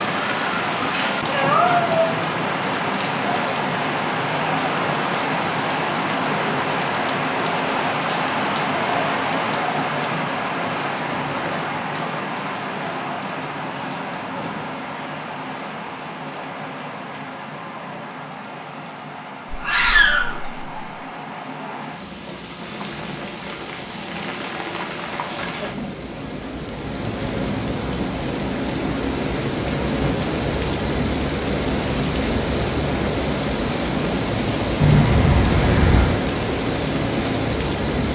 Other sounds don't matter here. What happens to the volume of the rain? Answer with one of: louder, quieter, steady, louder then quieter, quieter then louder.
quieter then louder.